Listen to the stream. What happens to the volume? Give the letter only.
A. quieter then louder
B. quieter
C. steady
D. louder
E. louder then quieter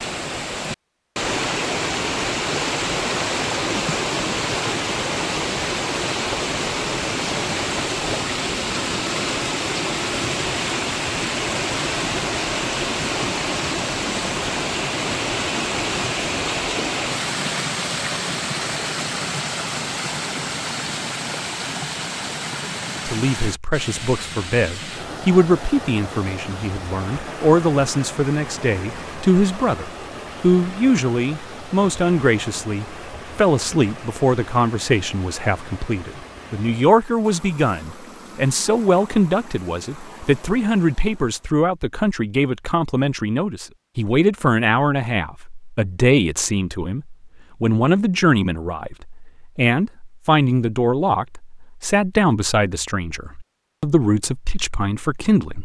B.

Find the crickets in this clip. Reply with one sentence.
You can't hear the crickets here.